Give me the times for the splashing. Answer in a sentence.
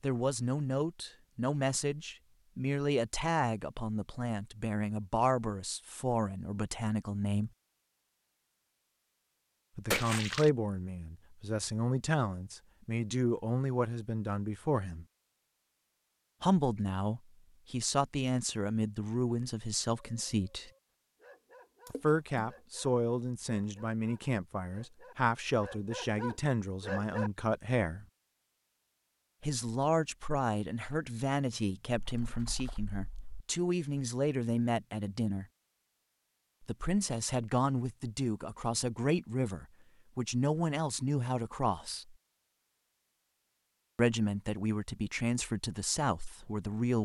You can hear the splashing from 9.9 to 10.5 s, from 21.9 to 22.5 s and from 31.9 to 33.4 s.